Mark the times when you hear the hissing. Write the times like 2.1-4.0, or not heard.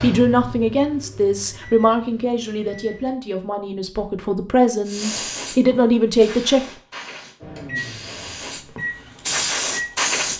4.8-10.3.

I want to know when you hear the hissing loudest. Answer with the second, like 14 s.
10 s.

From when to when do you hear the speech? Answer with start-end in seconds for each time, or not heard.
0.0-6.7.